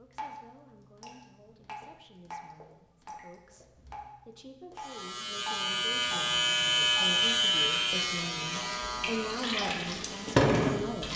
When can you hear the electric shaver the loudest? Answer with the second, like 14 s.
7 s.